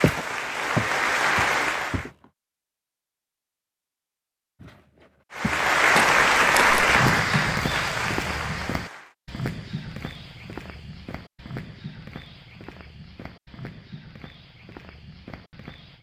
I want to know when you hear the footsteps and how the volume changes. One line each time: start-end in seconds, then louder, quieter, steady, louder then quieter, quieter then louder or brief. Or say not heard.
0.0-2.3 brief
4.6-15.9 quieter.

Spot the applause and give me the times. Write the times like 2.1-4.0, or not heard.
0.0-2.1, 5.3-9.2.